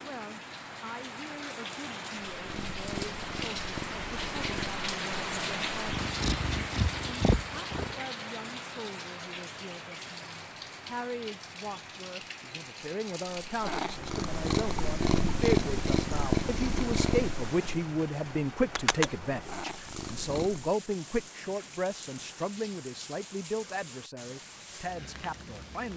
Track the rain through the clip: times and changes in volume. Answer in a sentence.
You can hear the rain from 0.0 to 25.9 s, getting quieter.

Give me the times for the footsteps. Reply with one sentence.
You can't hear the footsteps here.